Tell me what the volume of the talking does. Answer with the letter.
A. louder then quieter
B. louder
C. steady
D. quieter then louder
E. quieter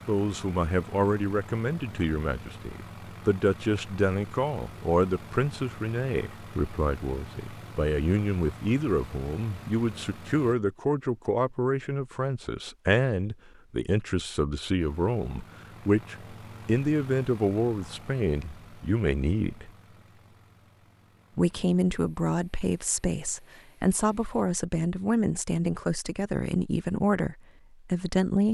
C.